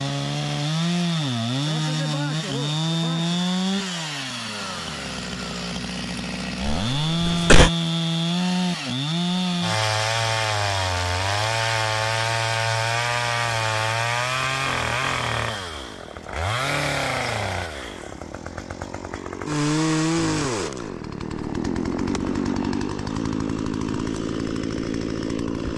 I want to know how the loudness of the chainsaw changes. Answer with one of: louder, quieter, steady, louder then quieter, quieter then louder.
steady.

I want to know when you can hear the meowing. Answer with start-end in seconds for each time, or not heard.
not heard.